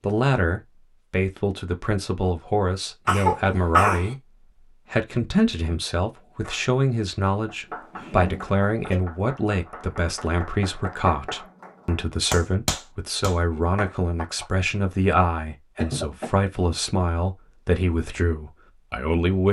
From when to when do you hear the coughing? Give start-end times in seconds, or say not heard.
3.0-4.1, 7.7-9.0, 15.8-16.5.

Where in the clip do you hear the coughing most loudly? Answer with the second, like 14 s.
4 s.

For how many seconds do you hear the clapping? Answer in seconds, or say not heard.
8 s.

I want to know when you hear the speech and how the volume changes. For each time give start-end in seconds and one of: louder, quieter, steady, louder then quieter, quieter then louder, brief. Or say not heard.
0.0-4.2 steady
4.9-19.4 steady.